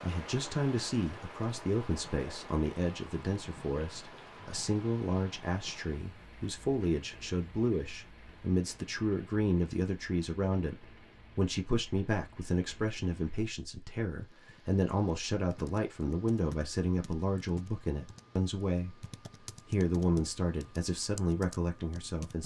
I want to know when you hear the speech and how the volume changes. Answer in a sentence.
The speech can be heard from 0.0 to 19.1 s, at a steady volume; and briefly from 19.6 to 22.4 s.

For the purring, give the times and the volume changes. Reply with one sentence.
The purring can't be heard in this clip.